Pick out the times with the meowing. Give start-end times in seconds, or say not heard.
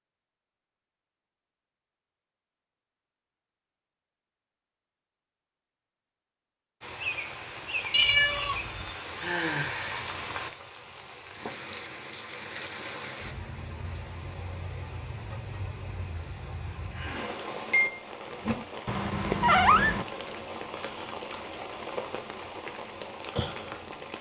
7.9-8.9, 18.9-20.1.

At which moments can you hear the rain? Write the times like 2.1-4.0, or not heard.
6.8-24.1.